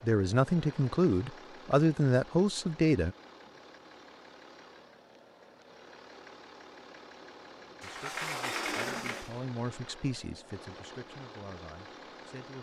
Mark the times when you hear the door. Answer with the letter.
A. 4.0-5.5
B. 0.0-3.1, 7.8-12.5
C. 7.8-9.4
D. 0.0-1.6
C.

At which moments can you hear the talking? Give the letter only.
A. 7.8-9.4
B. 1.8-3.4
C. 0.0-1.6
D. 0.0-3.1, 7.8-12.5
D.